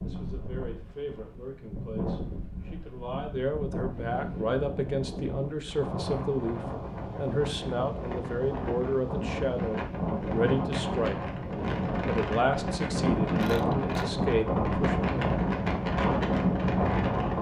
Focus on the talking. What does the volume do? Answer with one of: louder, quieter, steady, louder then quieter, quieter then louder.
louder.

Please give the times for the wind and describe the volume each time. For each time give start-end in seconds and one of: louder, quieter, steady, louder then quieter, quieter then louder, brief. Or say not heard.
0.0-17.3 louder.